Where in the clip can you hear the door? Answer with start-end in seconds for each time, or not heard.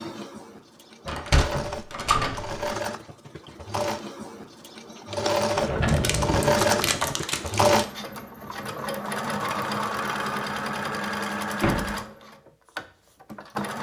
1.1-2.8, 5.5-7.2, 11.6-12.1.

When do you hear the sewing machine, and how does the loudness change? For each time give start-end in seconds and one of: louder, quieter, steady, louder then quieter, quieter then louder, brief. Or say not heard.
0.0-13.7 louder then quieter.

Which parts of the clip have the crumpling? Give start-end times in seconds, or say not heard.
5.8-7.8.